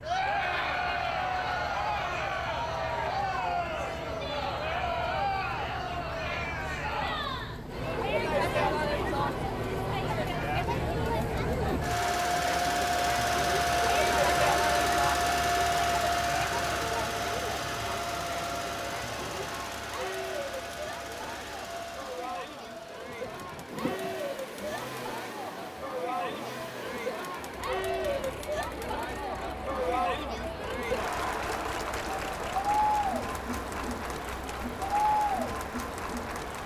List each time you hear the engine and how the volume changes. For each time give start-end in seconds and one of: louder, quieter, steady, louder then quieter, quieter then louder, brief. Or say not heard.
0.0-36.6 louder then quieter.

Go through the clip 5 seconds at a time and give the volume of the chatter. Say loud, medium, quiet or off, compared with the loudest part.
loud, loud, loud, medium, medium, loud, loud, loud.